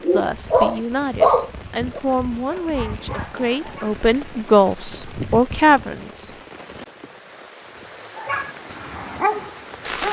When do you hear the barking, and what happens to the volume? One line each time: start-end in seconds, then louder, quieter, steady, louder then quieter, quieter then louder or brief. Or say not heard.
0.0-4.0 quieter
8.2-10.0 brief.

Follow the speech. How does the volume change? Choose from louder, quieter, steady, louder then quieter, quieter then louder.
louder.